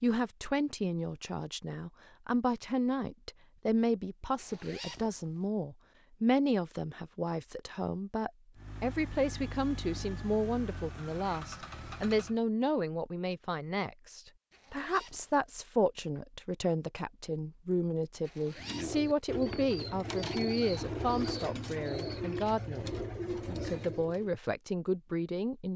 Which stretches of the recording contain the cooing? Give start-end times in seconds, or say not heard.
18.6-24.3.